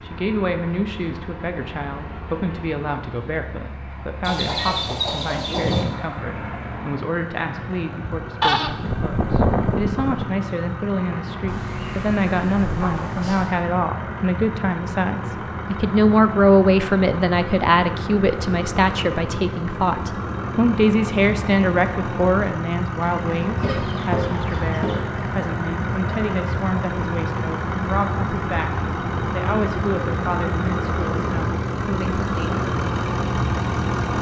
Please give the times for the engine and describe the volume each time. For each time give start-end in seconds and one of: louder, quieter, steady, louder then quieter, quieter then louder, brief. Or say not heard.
0.0-34.1 louder.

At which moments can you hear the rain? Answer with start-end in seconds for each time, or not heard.
not heard.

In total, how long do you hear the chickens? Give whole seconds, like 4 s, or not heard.
5 s.